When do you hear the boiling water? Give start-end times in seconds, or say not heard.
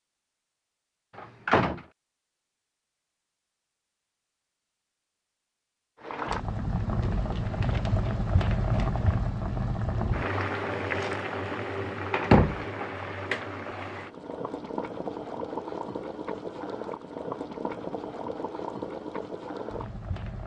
6.0-20.4.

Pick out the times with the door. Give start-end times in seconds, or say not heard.
1.1-1.8, 12.2-12.6.